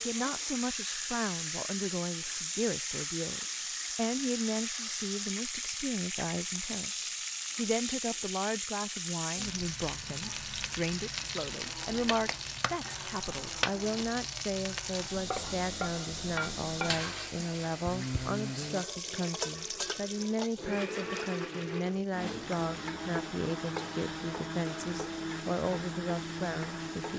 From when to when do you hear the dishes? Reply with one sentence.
The dishes can't be heard in this clip.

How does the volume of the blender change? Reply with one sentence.
The loudness of the blender goes up.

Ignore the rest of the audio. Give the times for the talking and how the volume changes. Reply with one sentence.
You can hear the talking from 0.0 to 27.1 s, at a steady volume.